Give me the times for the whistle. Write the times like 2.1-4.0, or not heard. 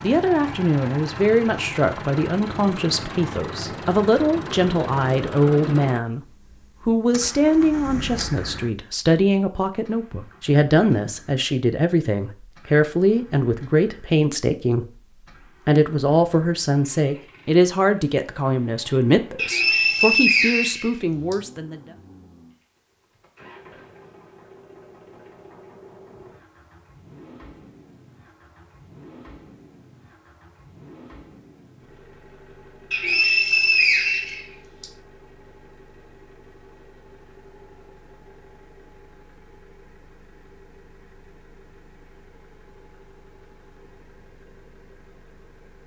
19.4-21.4, 32.9-34.9.